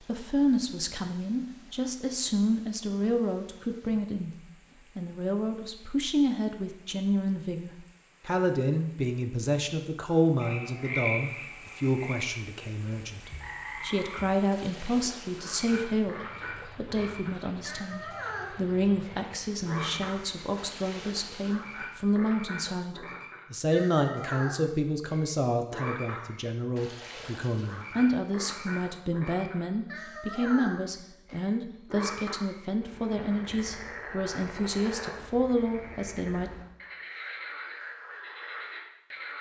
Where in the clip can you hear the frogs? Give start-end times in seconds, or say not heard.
10.4-39.3.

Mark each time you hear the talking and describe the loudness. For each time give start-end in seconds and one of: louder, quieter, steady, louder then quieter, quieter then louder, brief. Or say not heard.
0.0-36.5 steady.